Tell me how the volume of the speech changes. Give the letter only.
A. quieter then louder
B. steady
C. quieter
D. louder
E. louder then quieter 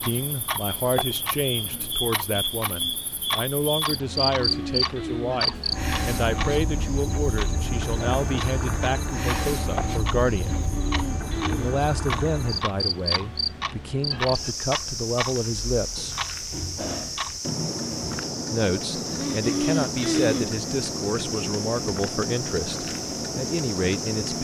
B.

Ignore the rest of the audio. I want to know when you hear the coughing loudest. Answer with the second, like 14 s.
20 s.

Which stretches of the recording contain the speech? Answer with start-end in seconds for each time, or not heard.
0.0-10.6, 11.5-16.1, 18.5-24.3.